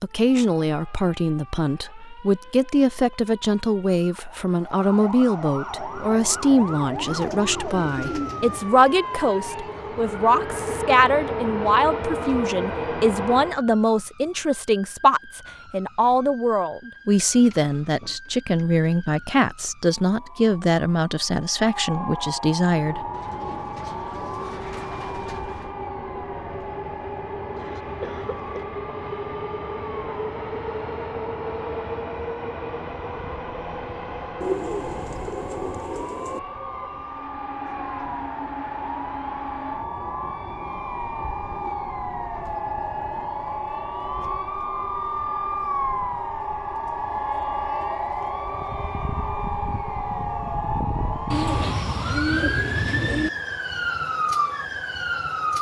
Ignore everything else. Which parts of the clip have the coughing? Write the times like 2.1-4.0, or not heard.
27.6-28.6.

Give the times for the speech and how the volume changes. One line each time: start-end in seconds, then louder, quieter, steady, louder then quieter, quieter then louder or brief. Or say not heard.
0.0-23.1 steady.